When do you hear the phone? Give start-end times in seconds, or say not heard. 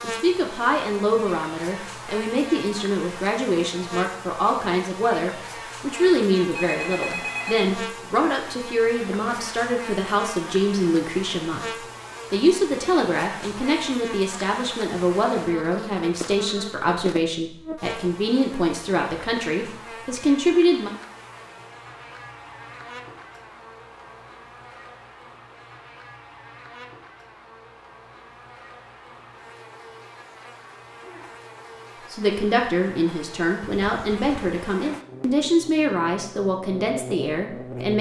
6.5-7.7, 33.6-34.5.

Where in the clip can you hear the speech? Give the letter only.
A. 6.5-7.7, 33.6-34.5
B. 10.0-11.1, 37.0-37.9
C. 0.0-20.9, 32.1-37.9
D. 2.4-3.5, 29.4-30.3
C.